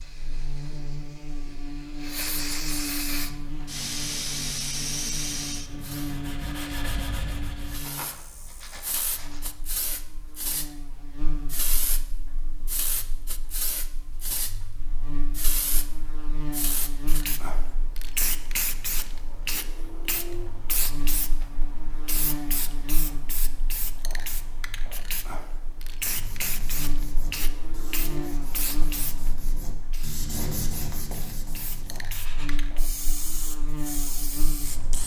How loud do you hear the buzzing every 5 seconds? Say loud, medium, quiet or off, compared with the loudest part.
loud, loud, medium, loud, loud, loud, loud.